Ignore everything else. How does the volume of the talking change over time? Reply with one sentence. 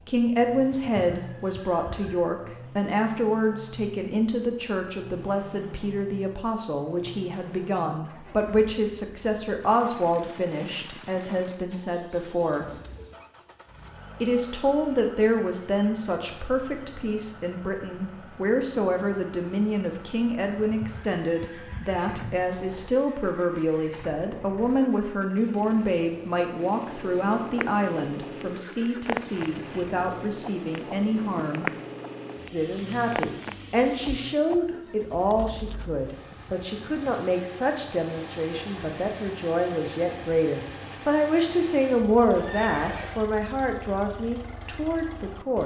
The loudness of the talking stays about the same.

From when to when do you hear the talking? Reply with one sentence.
You can hear the talking from 0.1 to 12.8 s, from 14.2 to 31.7 s and from 32.5 to 45.6 s.